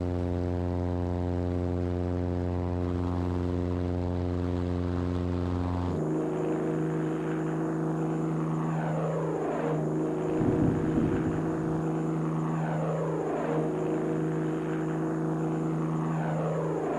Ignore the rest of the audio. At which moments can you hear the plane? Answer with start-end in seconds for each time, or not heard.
0.0-16.9.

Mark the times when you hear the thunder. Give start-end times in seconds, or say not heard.
10.2-11.8.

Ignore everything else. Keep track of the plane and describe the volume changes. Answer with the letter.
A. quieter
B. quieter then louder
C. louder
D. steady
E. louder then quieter
D.